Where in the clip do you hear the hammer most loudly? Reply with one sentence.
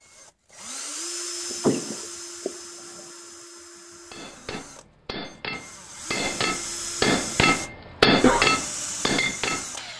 The volume of the hammer peaks at 8 seconds.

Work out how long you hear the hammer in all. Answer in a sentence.
You can hear the hammer for 6 seconds altogether.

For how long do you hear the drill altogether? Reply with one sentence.
You can hear the drill for 10 seconds altogether.